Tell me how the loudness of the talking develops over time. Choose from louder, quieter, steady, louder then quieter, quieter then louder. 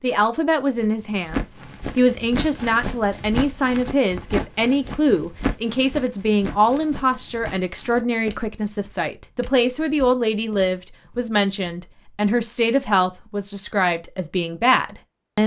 steady.